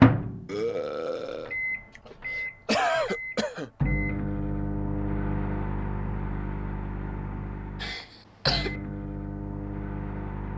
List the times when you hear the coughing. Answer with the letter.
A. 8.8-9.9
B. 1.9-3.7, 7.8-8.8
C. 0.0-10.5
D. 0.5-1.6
B.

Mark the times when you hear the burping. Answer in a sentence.
The burping can be heard from 0.5 to 1.6 s.